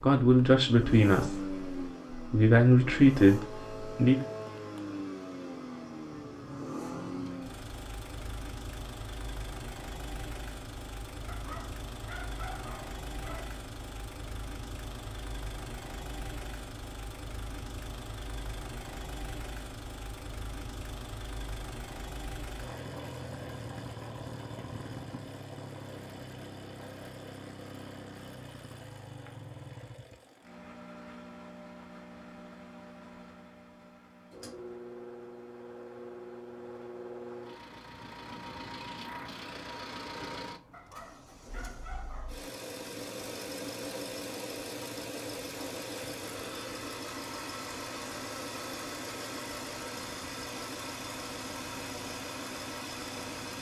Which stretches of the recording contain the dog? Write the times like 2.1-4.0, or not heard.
11.2-13.6, 40.7-42.4.